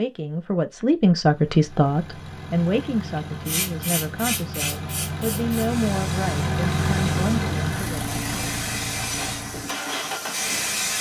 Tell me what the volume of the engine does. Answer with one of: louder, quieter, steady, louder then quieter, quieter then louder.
louder then quieter.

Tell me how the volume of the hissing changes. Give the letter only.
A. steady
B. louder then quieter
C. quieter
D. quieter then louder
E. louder
D.